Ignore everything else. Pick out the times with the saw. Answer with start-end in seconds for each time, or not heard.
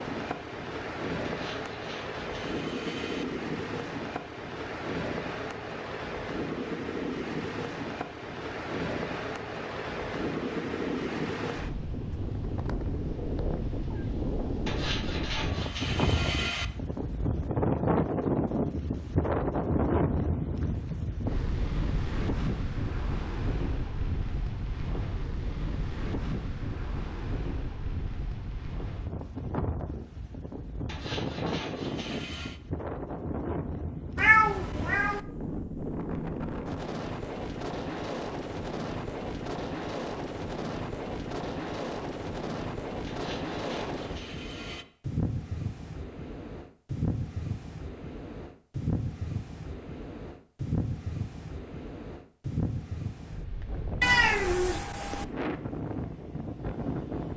1.2-3.2, 14.7-16.7, 30.9-32.6, 43.0-44.9.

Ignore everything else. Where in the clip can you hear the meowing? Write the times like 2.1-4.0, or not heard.
12.3-14.1, 34.1-35.2, 54.0-55.2.